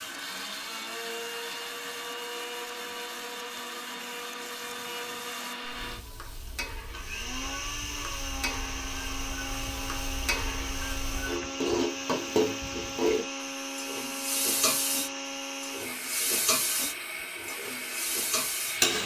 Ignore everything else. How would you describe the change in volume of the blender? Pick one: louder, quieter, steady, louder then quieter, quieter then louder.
steady.